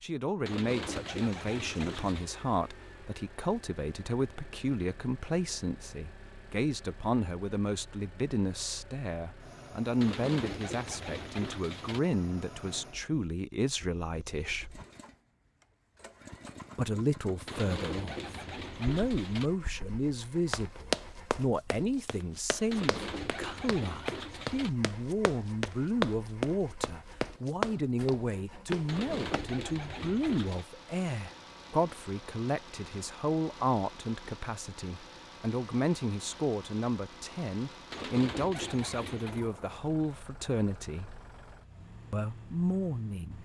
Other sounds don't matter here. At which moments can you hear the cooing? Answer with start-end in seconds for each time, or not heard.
0.5-2.3, 10.0-12.0, 17.4-19.5, 22.7-24.7, 28.9-30.6, 37.9-39.4.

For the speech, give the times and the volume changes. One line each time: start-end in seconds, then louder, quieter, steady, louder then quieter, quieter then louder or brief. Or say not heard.
0.0-14.7 steady
16.8-41.2 steady
42.1-43.3 brief.